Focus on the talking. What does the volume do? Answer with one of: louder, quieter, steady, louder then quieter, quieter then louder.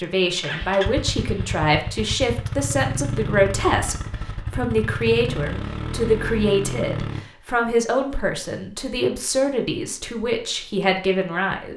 steady.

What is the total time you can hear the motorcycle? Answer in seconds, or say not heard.
7 s.